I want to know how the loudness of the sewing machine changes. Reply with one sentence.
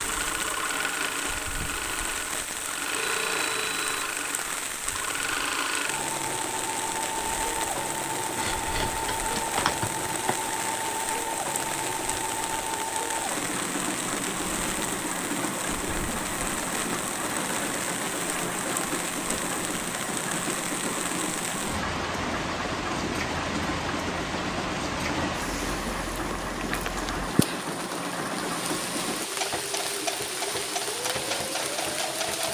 The loudness of the sewing machine stays about the same.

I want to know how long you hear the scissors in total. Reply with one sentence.
You can hear the scissors for 2 seconds altogether.